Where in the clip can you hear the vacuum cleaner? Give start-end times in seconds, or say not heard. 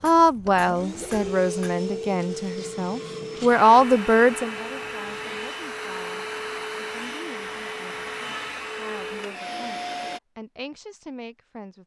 0.0-10.2.